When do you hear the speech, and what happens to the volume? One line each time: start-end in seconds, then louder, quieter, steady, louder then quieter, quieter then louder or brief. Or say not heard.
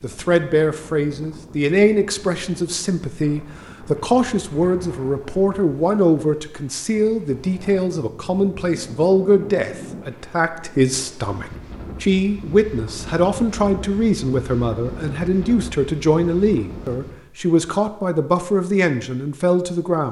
0.0-20.0 steady.